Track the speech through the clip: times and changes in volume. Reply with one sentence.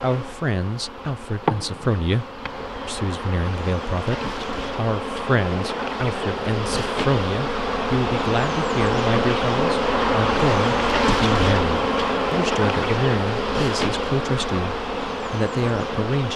The speech can be heard from 0.0 to 16.3 s, at a steady volume.